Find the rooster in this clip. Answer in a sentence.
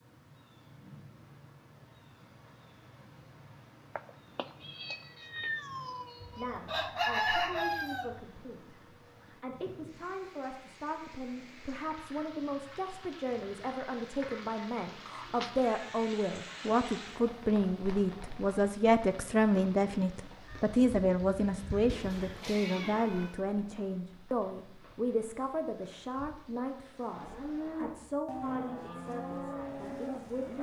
The rooster can be heard from 6.2 to 8.2 s and from 20.4 to 22.4 s.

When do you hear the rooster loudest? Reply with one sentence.
The volume of the rooster peaks at 7 seconds.